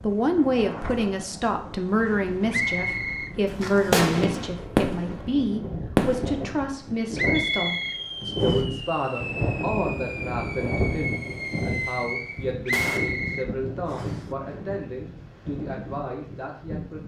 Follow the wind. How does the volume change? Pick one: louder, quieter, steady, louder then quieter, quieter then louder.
louder then quieter.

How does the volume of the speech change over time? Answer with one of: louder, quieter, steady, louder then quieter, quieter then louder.
quieter.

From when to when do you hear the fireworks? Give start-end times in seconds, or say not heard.
3.5-13.0.